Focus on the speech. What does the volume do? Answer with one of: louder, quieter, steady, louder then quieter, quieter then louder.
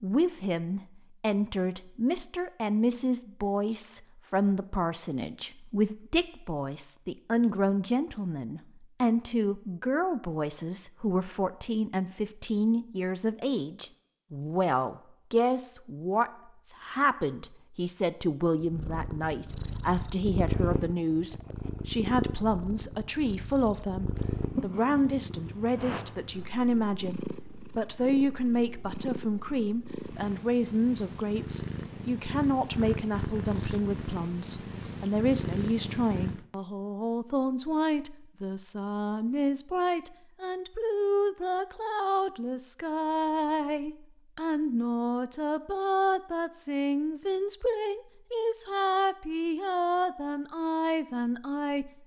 steady.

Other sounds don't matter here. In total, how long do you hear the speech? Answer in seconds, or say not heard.
52 s.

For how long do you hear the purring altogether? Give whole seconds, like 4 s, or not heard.
18 s.